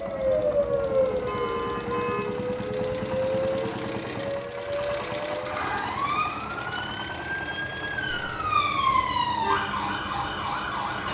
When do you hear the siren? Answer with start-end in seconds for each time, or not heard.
0.0-11.0.